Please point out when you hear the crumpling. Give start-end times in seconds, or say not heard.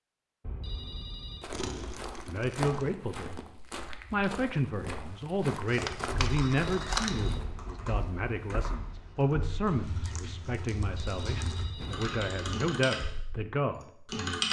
1.5-3.0, 5.0-7.2, 10.1-11.7.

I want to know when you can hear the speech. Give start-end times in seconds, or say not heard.
2.2-3.5, 4.1-14.4.